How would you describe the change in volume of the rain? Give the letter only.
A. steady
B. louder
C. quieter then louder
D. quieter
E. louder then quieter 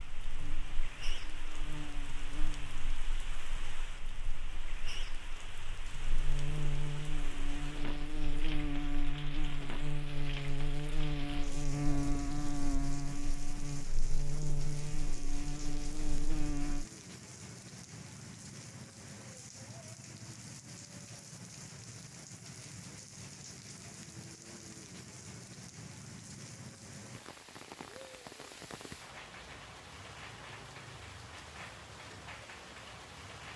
A.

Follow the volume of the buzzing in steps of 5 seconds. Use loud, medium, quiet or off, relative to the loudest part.
quiet, loud, loud, loud, off, off, off.